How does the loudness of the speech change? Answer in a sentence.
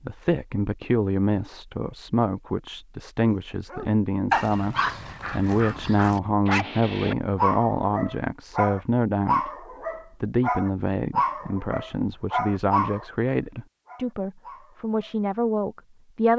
The loudness of the speech stays about the same.